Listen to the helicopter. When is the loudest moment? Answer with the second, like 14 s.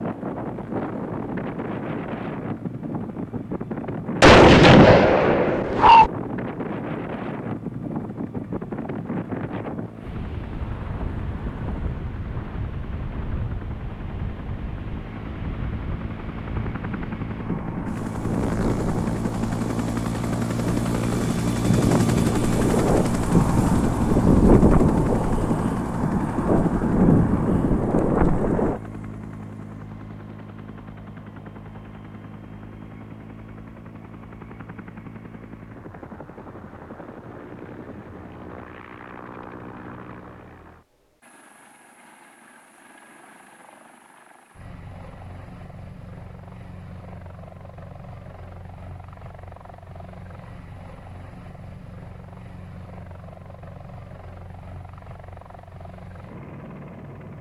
22 s.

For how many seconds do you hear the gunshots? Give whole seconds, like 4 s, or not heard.
2 s.